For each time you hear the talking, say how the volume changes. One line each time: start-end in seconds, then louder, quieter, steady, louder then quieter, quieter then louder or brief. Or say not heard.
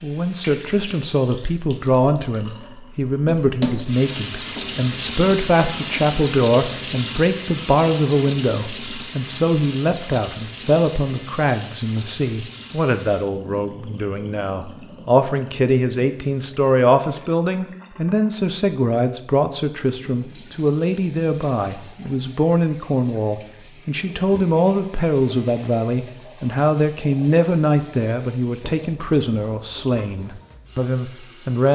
0.0-31.7 steady.